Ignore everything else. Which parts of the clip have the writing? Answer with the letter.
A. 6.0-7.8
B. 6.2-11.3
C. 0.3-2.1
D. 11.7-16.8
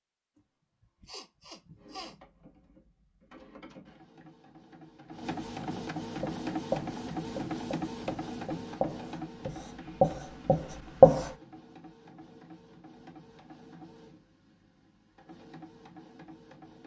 B.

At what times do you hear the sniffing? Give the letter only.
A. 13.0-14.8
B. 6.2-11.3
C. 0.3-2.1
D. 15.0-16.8
C.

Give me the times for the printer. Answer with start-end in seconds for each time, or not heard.
1.8-16.8.